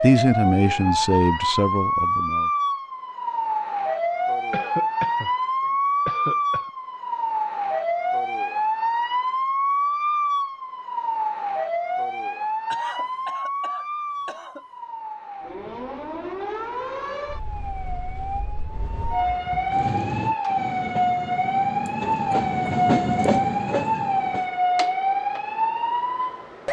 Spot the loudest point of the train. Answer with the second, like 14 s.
23 s.